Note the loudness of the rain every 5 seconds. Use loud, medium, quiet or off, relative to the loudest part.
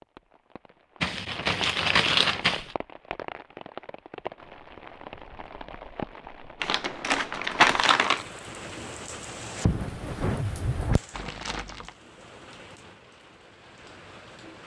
medium, loud, loud.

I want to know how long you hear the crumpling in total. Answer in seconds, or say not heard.
4 s.